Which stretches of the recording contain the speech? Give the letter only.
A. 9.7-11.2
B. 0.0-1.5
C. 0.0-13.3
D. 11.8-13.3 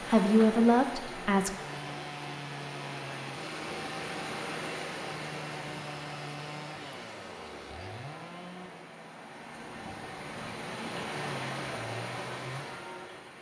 B.